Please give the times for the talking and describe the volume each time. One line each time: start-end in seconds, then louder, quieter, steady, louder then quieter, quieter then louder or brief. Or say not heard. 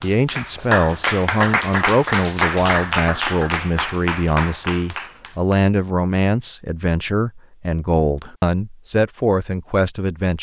0.0-10.3 steady.